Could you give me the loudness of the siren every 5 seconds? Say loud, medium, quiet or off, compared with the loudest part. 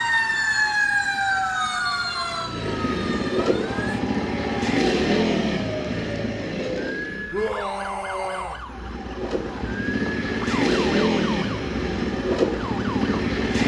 loud, medium, medium.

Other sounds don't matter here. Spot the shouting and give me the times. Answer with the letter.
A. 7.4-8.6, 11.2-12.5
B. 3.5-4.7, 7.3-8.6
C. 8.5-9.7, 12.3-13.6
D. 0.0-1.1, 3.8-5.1
B.